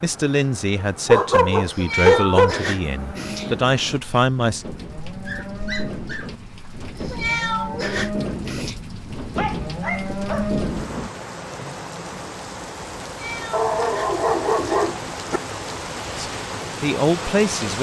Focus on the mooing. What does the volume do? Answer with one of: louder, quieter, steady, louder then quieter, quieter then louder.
louder.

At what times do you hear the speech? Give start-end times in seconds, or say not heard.
0.0-4.7, 16.1-17.7.